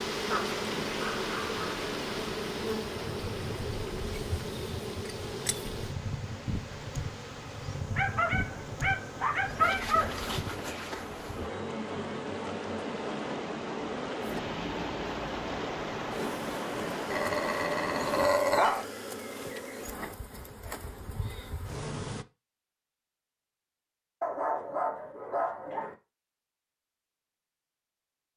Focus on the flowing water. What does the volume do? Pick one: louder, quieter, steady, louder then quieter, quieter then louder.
quieter then louder.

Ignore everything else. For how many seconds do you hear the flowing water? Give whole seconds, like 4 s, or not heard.
18 s.